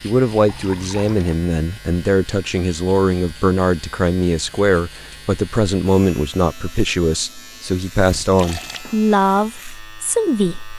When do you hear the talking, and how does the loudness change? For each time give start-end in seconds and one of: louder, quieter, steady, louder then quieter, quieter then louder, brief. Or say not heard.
0.0-10.7 steady.